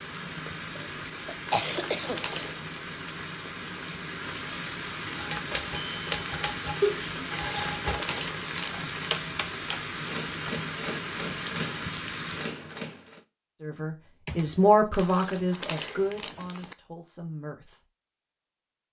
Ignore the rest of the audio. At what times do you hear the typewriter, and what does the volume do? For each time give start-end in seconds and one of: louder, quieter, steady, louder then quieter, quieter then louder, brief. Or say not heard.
5.1-13.2 steady.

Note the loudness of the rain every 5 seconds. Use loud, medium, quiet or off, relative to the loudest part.
loud, loud, loud, off.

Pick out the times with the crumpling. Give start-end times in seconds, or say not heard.
1.4-2.7, 7.3-8.9, 14.9-16.8.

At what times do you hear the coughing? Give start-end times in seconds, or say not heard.
0.8-2.4, 6.8-7.2, 14.2-14.8.